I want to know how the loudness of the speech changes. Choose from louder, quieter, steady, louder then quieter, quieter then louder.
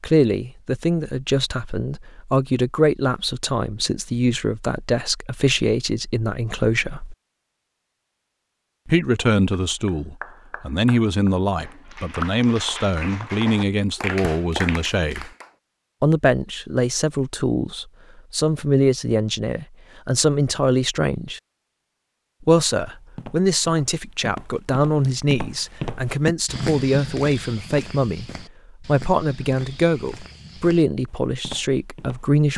steady.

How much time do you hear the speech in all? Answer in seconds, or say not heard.
29 s.